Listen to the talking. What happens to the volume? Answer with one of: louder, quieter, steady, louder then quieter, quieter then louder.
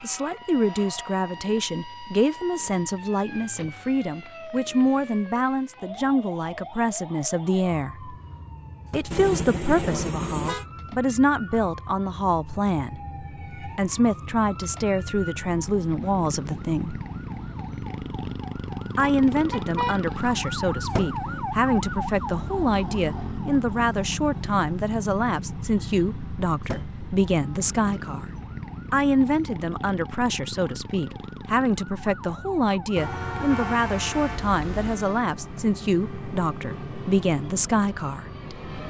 steady.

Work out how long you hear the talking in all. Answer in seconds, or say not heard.
35 s.